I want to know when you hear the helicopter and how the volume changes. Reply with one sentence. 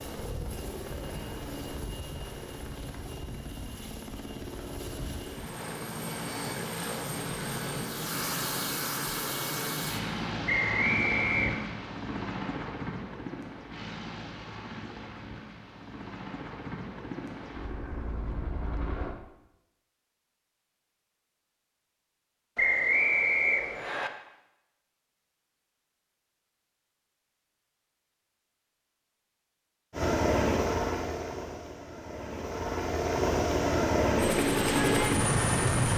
You can hear the helicopter from 0.0 to 19.1 s, getting louder then quieter; and from 29.9 to 35.9 s, getting quieter then louder.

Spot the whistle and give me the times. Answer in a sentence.
The whistle can be heard from 10.4 to 11.7 s and from 22.6 to 24.1 s.